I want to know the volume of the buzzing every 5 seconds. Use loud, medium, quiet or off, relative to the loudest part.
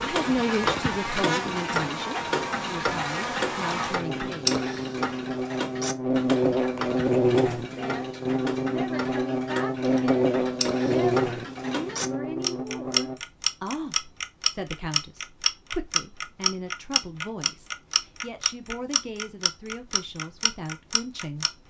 medium, loud, loud, off, off.